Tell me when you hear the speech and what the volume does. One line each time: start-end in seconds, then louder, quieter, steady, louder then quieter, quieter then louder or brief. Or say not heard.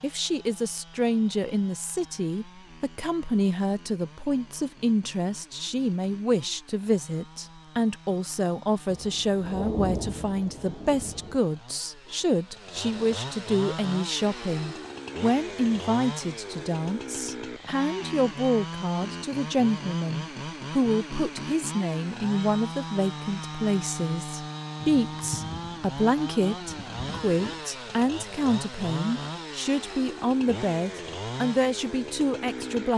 0.0-32.9 steady.